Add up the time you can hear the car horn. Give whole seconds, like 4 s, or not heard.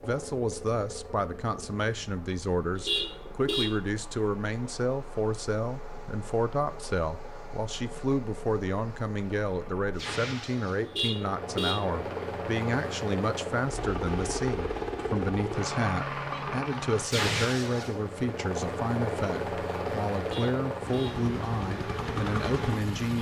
3 s.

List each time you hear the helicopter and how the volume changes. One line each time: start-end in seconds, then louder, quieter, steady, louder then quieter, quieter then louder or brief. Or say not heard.
0.0-23.1 louder.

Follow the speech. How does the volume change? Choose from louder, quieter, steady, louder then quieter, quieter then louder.
steady.